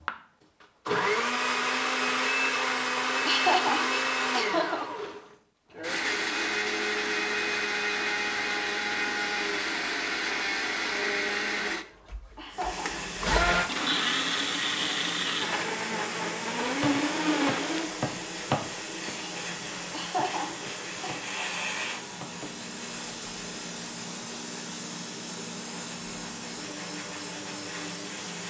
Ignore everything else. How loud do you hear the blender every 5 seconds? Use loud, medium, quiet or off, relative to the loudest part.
loud, loud, loud, loud, quiet, quiet.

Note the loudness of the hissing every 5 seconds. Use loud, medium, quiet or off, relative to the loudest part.
off, off, loud, loud, loud, loud.